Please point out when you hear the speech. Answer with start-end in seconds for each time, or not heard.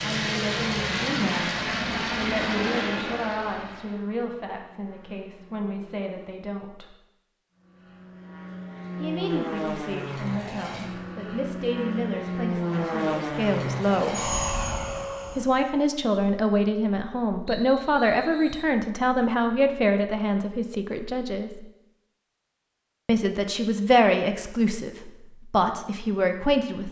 0.0-7.0, 9.0-14.2, 15.3-21.6, 23.1-26.8.